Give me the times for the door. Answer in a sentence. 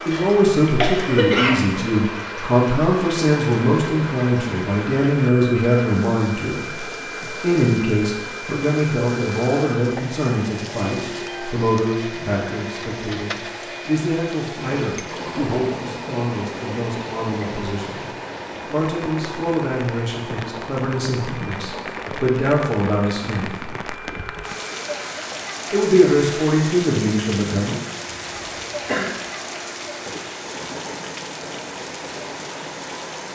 The door can't be heard in this clip.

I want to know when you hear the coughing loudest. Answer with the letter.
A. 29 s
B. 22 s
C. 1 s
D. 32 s
C.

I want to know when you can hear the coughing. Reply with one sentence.
The coughing can be heard from 0.1 to 1.6 s and from 28.1 to 29.2 s.